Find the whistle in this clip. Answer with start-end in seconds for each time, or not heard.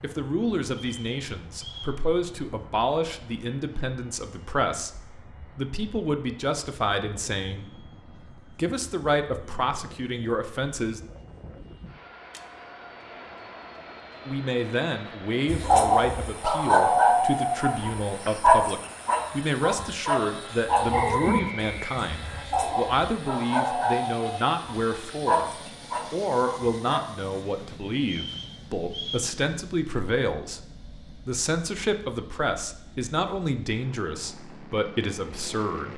0.8-2.0, 20.9-22.4, 28.0-29.3.